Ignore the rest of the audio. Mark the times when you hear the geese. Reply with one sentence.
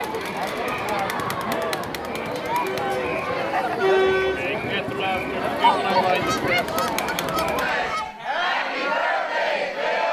The geese can be heard from 6.2 to 8.1 s.